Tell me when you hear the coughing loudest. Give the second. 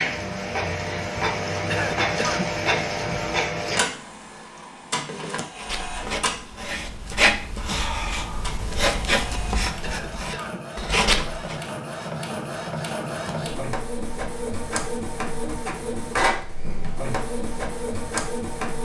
2 s.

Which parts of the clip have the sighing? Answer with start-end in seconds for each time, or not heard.
7.7-8.7.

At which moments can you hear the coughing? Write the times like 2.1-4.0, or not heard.
1.6-2.5, 9.8-10.7.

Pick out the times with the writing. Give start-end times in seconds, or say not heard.
5.5-11.6.